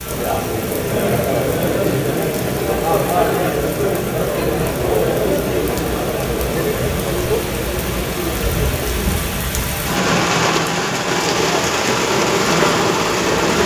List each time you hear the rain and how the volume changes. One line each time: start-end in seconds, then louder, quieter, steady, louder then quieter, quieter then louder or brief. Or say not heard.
0.0-13.6 louder.